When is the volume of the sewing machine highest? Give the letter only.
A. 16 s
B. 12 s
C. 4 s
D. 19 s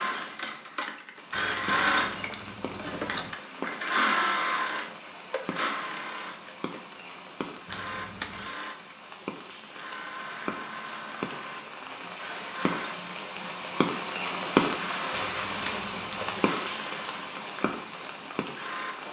C.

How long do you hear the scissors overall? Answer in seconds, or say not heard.
4 s.